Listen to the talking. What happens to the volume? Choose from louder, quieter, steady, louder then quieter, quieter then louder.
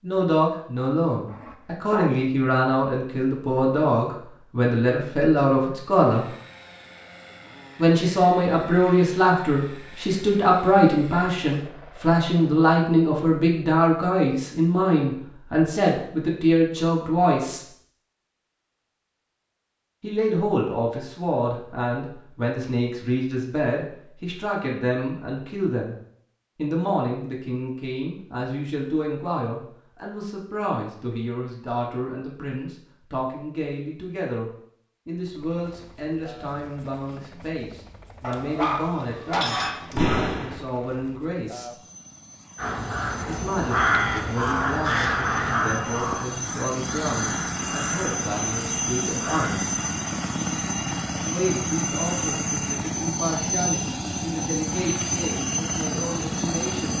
quieter.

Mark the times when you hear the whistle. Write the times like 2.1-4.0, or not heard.
not heard.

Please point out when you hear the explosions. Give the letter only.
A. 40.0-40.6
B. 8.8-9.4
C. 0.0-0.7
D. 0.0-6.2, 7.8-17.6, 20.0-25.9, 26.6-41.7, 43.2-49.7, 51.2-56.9
A.